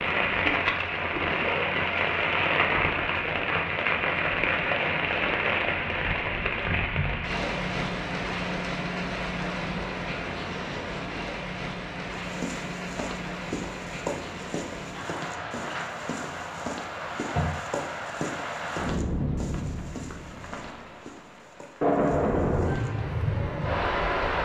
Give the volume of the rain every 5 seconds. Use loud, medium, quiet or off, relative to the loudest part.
loud, loud, medium, medium, loud.